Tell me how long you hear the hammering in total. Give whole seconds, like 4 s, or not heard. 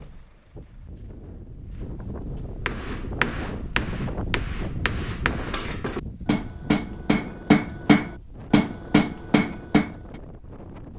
7 s.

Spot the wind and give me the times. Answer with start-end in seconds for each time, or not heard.
0.0-10.9.